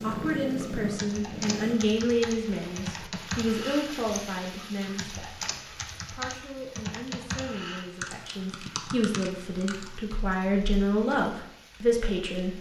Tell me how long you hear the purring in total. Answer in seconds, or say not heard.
2 s.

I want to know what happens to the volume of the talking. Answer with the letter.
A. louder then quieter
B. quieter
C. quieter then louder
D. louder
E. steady
C.